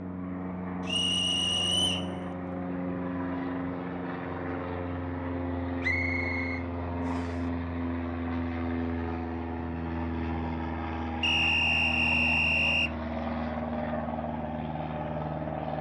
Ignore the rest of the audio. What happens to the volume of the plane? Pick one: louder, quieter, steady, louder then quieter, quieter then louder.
steady.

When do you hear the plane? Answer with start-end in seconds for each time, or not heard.
0.0-15.7.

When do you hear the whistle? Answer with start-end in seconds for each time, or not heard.
0.8-2.1, 5.8-7.3, 11.2-12.9.